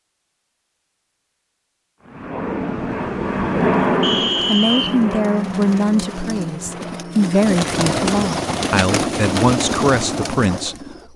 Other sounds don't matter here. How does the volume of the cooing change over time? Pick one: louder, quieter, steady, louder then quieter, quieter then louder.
louder.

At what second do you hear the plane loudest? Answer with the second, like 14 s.
4 s.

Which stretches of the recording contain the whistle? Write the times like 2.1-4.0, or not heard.
4.0-5.0.